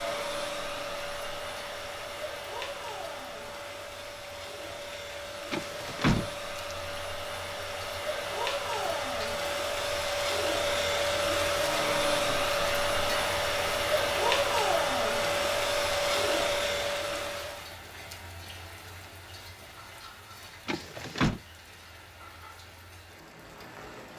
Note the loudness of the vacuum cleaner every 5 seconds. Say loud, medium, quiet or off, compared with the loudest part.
medium, medium, loud, loud, off.